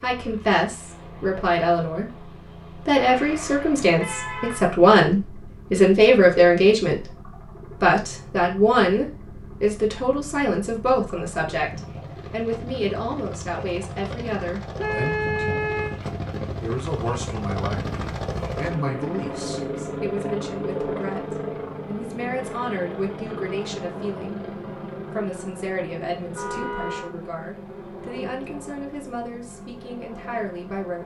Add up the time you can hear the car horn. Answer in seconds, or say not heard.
4 s.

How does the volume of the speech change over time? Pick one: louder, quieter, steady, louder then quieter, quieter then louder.
quieter.